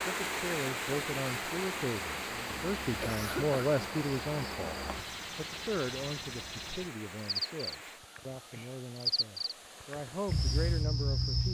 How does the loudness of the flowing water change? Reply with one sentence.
The volume of the flowing water goes down.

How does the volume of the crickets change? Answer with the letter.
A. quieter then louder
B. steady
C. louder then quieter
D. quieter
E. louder
E.